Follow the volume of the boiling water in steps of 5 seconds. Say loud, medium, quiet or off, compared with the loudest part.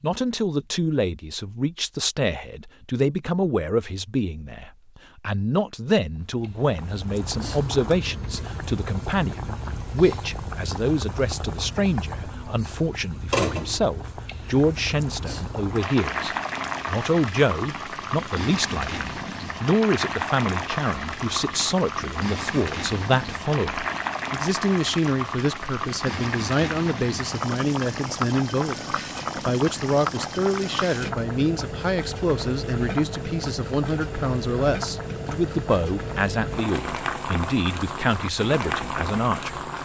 off, medium, loud, loud, loud, loud, loud, loud.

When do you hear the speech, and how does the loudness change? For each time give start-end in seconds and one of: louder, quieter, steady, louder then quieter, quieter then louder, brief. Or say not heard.
0.0-39.6 steady.